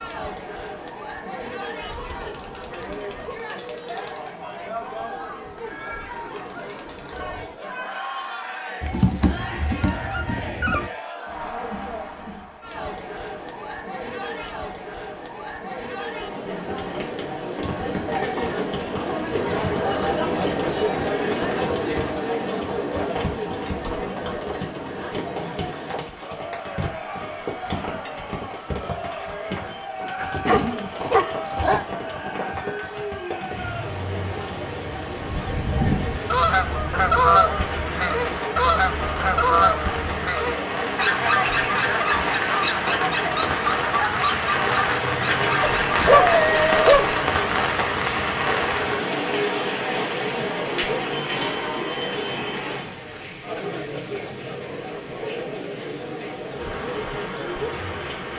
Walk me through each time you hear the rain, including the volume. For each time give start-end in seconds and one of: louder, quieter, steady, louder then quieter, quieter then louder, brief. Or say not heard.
16.5-58.3 louder then quieter.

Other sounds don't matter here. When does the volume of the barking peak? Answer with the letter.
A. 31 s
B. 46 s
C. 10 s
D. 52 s
B.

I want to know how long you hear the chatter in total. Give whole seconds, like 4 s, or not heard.
58 s.